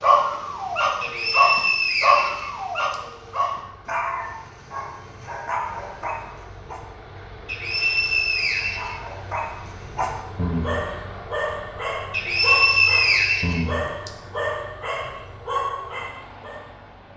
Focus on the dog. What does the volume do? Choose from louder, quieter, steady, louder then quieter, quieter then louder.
quieter.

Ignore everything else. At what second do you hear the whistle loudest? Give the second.
13 s.